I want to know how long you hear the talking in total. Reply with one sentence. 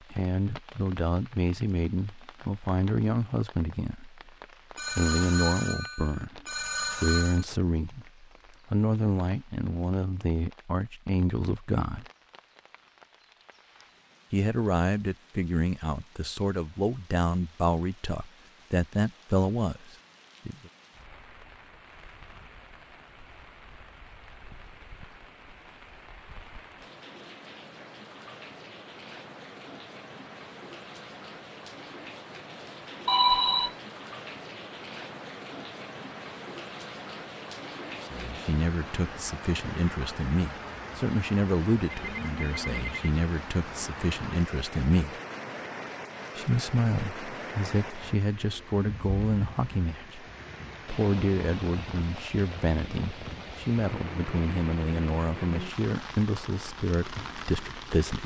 The talking can be heard for 36 seconds in total.